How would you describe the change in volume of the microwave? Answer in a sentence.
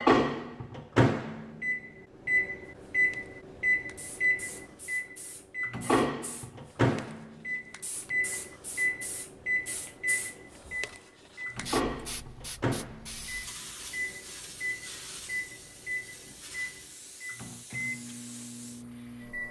The loudness of the microwave goes down.